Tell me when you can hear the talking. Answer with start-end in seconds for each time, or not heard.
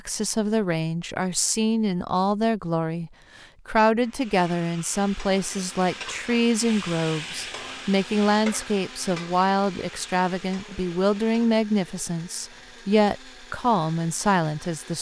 0.1-14.9.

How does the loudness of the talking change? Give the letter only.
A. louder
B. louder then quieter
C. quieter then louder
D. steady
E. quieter
D.